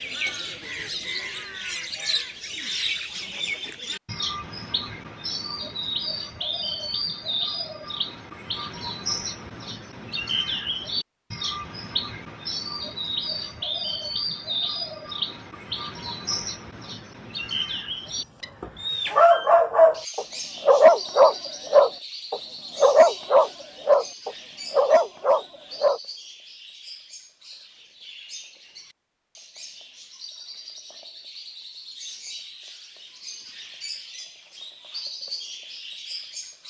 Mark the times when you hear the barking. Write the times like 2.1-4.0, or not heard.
18.1-26.0.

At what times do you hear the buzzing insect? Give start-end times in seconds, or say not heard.
not heard.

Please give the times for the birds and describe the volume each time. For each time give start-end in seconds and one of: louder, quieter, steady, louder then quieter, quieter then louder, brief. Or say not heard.
0.0-36.6 quieter.